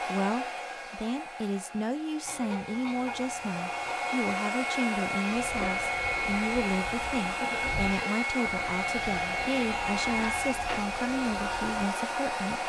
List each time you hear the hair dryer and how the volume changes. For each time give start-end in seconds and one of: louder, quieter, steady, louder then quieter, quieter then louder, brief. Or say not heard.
0.0-12.6 louder.